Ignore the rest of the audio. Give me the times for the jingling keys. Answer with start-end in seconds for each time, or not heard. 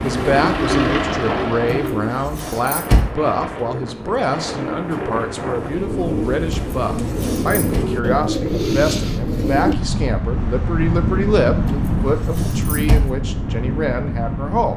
1.7-3.1, 6.5-7.8, 11.7-13.1.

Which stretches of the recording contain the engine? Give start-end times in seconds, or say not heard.
0.0-1.9.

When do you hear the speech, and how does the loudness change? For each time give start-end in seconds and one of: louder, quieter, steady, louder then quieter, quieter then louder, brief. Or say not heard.
0.0-14.7 steady.